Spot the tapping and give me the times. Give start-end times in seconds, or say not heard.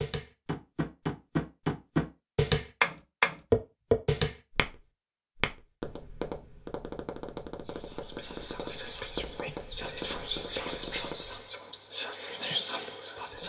0.0-11.2.